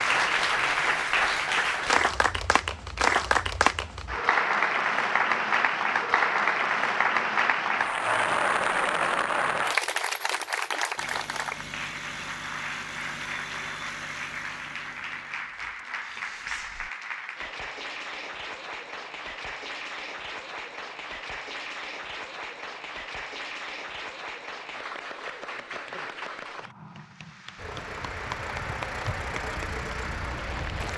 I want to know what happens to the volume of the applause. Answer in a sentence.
The volume of the applause goes down.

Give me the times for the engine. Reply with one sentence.
The engine can be heard from 10.9 to 16.9 s and from 27.6 to 30.9 s.